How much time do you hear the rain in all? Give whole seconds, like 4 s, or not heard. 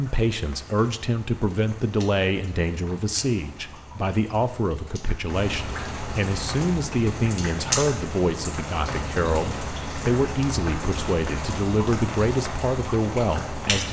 14 s.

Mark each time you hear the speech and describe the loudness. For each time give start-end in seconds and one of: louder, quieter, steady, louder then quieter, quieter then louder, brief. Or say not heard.
0.0-13.8 steady.